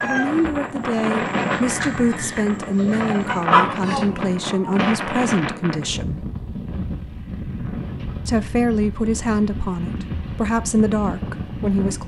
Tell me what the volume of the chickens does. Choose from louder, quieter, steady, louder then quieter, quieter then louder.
louder.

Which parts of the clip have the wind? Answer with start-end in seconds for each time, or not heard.
0.0-12.0.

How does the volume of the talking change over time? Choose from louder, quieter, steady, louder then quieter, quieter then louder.
steady.